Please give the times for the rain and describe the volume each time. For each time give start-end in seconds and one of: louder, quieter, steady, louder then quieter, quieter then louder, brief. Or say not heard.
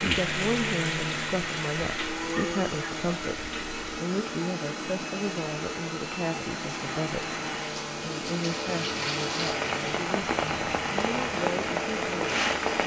0.0-12.8 quieter then louder.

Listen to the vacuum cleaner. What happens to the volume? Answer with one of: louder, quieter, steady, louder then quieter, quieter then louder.
steady.